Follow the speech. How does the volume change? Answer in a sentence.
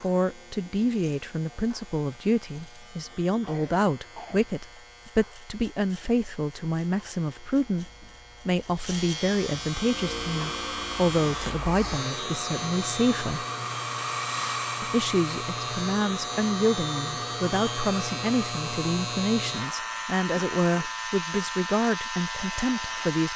The volume of the speech stays about the same.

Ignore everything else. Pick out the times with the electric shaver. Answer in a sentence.
The electric shaver can be heard from 0.0 to 23.3 s.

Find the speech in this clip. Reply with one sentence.
The speech can be heard from 0.0 to 13.4 s and from 14.8 to 23.3 s.